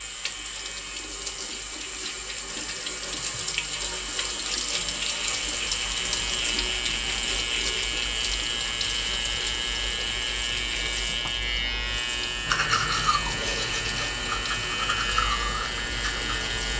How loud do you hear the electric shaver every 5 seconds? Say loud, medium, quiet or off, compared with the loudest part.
medium, loud, loud, loud.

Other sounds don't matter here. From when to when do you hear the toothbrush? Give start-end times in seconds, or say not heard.
12.4-16.7.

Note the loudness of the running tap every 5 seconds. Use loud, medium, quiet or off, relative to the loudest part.
loud, loud, medium, medium.